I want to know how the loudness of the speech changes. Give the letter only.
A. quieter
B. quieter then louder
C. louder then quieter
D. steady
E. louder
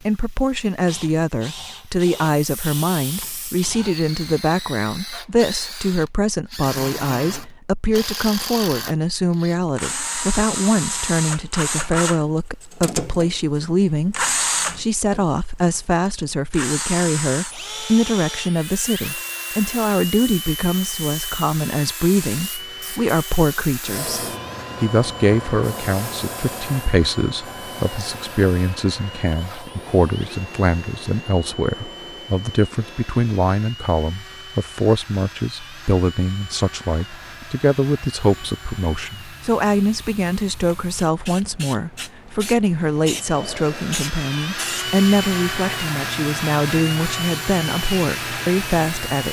D.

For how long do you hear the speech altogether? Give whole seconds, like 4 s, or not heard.
49 s.